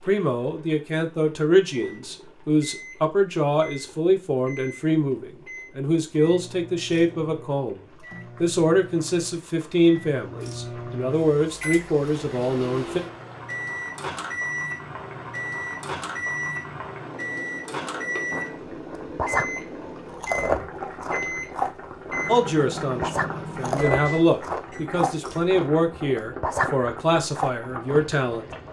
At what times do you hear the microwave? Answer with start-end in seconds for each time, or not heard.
1.6-24.9.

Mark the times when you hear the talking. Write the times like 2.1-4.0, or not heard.
0.1-7.8, 8.4-13.0, 22.2-28.4.